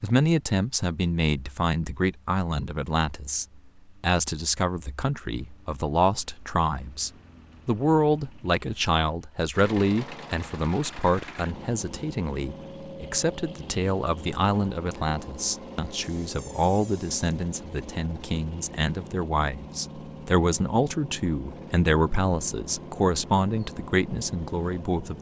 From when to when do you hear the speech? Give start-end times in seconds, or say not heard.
0.0-25.1.